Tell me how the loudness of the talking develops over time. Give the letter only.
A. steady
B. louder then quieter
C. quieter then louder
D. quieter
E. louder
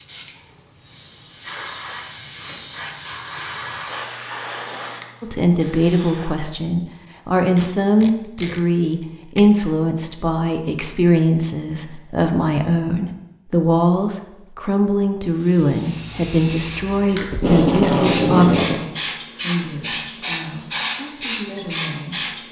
D.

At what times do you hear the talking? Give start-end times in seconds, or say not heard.
5.2-22.2.